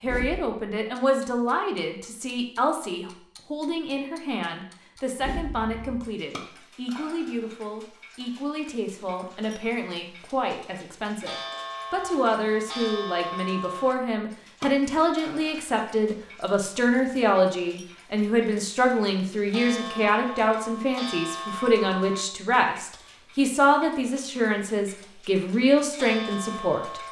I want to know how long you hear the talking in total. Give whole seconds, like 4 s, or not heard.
27 s.